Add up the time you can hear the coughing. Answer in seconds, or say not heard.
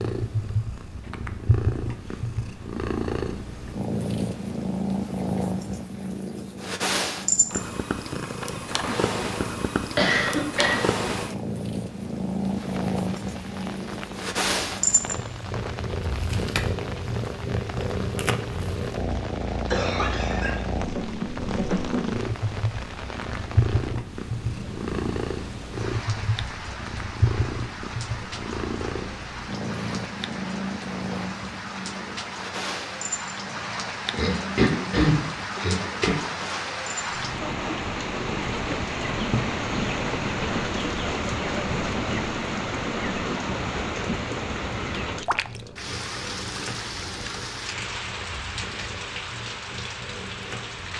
4 s.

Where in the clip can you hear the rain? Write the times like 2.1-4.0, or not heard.
12.4-50.9.